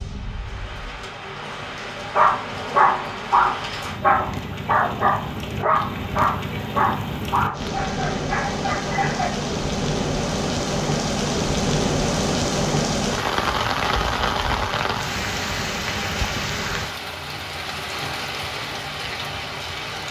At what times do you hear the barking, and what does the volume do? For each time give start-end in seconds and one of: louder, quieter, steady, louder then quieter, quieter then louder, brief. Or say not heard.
2.0-9.3 quieter.